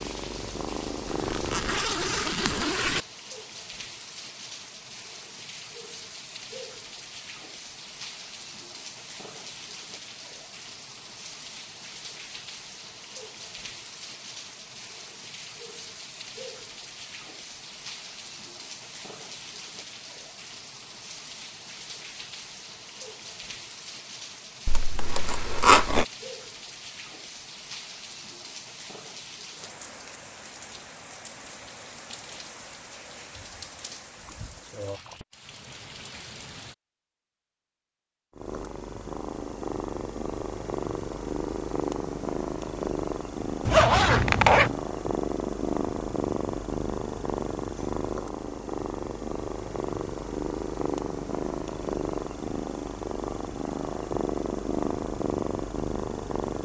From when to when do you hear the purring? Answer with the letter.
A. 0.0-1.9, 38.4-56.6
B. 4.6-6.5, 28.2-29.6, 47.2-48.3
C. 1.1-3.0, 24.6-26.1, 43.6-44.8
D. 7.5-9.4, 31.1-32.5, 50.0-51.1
A.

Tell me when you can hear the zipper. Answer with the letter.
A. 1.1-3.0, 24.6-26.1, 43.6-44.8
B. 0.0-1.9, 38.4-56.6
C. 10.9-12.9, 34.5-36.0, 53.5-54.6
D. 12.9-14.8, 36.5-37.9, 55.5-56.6
A.